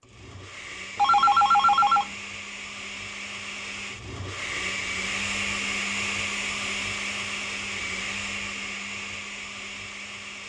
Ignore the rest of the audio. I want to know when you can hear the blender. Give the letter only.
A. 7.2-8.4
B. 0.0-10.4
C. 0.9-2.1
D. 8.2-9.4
B.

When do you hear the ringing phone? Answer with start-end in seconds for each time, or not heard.
0.9-2.1.